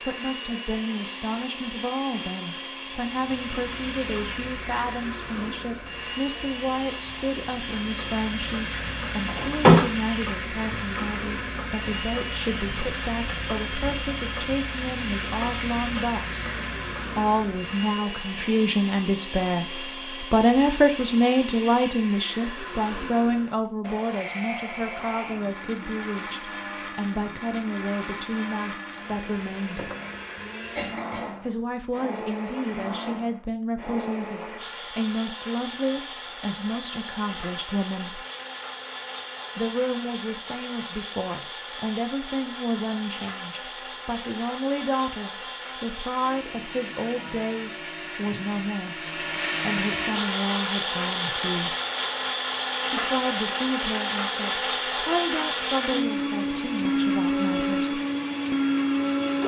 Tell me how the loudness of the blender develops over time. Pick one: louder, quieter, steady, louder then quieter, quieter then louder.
louder.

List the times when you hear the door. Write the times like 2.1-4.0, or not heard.
8.7-9.9.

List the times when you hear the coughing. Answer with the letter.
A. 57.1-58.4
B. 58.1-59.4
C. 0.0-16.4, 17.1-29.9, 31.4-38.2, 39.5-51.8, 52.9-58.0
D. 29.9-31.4
D.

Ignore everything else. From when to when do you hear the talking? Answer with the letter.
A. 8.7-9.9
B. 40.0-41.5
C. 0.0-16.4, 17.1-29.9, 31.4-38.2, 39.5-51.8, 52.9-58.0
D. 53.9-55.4
C.